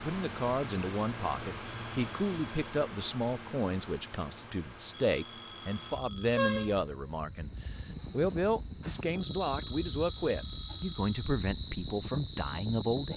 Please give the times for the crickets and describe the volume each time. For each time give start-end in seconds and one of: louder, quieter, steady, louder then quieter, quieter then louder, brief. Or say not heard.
0.0-13.1 quieter then louder.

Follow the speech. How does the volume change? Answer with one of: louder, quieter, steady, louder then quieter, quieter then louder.
steady.